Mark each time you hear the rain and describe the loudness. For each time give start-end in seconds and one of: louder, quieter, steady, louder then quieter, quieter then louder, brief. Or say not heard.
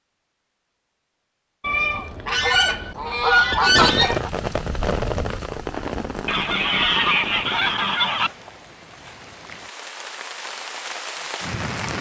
3.6-11.9 quieter then louder.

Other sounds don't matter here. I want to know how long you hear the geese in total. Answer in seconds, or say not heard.
5 s.